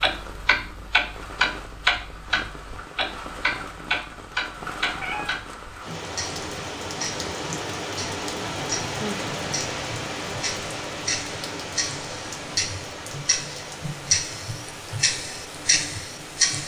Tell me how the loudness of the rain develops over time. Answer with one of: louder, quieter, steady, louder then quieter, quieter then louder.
louder then quieter.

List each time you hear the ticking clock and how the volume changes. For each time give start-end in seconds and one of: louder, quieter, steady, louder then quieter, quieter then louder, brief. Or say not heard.
0.0-16.6 quieter then louder.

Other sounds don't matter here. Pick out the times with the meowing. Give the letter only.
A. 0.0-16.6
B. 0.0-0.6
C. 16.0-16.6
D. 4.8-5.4
D.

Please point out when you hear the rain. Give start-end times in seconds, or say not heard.
0.0-16.6.